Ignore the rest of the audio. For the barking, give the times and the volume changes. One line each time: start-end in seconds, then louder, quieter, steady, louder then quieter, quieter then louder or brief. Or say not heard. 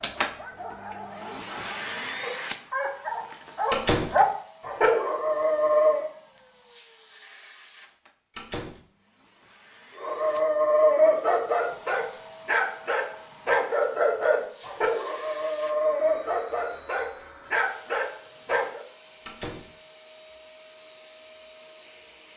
0.0-6.1 louder
10.0-18.8 quieter.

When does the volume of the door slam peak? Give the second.
4 s.